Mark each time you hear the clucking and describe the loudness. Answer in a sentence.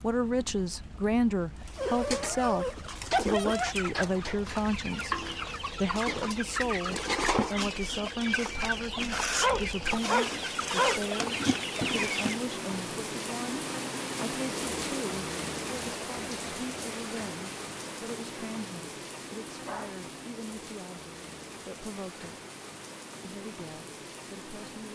The clucking can be heard from 1.6 to 12.4 s, getting louder.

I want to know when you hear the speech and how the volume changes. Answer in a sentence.
The speech can be heard from 0.0 to 22.4 s, getting quieter; and briefly from 23.2 to 24.9 s.